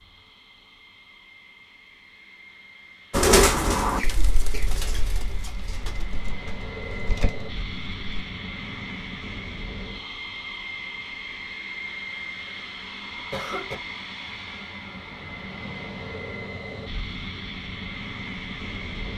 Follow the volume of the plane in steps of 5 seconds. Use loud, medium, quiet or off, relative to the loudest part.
quiet, loud, loud, loud.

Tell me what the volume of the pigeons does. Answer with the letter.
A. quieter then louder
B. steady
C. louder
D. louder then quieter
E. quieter
E.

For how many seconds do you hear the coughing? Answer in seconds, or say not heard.
2 s.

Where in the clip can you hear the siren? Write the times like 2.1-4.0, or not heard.
not heard.